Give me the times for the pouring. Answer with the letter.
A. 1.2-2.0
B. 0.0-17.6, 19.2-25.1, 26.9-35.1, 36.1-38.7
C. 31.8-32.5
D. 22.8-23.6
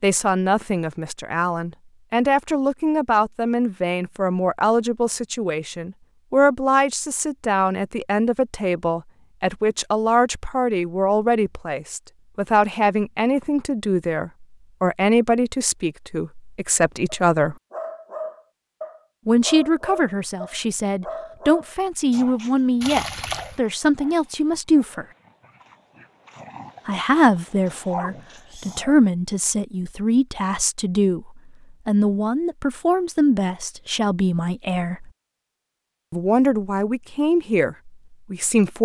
D.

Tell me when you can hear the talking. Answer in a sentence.
You can hear the talking from 0.0 to 17.6 s, from 19.2 to 25.1 s, from 26.9 to 35.1 s and from 36.1 to 38.7 s.